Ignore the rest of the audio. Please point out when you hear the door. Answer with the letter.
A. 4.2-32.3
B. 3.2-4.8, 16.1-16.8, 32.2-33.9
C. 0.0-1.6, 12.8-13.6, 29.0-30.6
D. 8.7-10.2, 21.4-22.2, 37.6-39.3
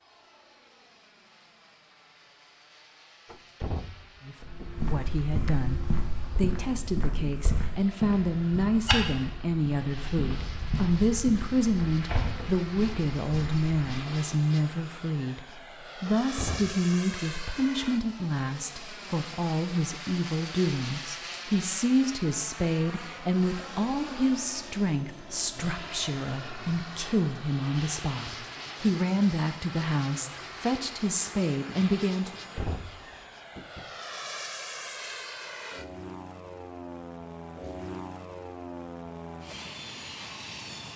B.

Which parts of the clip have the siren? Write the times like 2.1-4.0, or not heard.
not heard.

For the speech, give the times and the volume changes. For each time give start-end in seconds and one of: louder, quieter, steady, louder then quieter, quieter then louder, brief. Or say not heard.
4.2-32.3 steady.